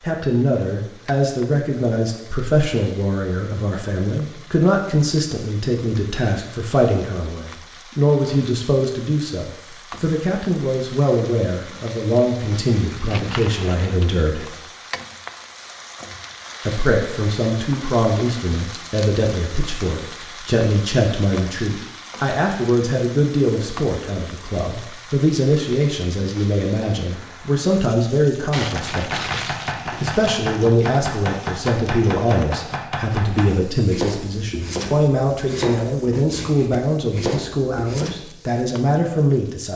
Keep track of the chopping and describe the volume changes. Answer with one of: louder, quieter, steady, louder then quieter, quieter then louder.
steady.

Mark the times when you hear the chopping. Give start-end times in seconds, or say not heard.
28.6-38.2.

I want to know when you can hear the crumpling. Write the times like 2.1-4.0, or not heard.
13.0-14.1, 28.5-30.2.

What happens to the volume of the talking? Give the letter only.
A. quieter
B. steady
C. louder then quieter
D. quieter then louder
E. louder
B.